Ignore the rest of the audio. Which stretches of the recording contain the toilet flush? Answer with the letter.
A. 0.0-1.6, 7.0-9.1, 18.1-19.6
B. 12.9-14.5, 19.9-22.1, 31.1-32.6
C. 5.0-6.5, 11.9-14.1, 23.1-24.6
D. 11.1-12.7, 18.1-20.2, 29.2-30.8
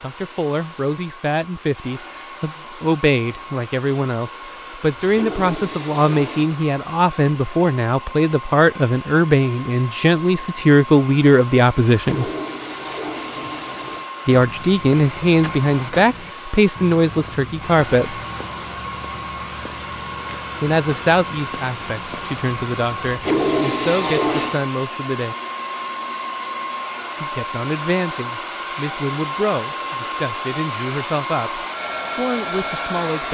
C.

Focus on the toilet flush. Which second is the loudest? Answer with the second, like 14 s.
24 s.